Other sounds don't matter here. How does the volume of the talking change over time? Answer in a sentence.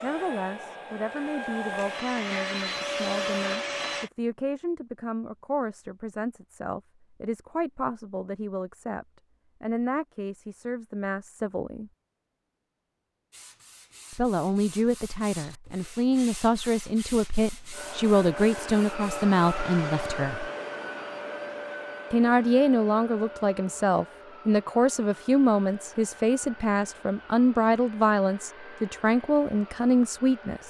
The volume of the talking goes up.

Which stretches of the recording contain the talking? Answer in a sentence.
The talking can be heard from 0.0 to 11.9 s, from 14.1 to 20.5 s and from 22.1 to 30.6 s.